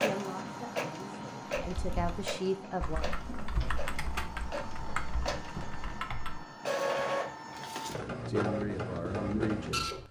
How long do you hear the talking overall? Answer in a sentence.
The talking can be heard for 5 seconds in total.